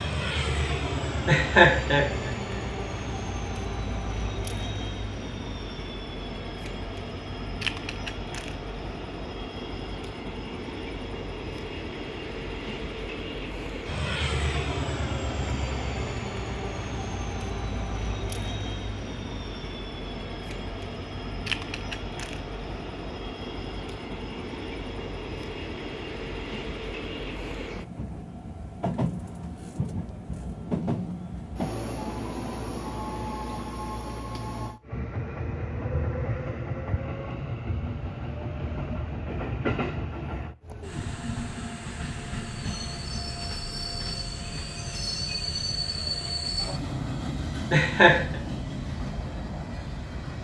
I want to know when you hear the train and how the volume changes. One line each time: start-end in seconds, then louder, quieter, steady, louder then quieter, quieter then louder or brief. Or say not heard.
0.0-50.4 steady.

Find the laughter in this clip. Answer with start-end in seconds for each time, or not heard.
1.2-2.6, 47.7-48.4.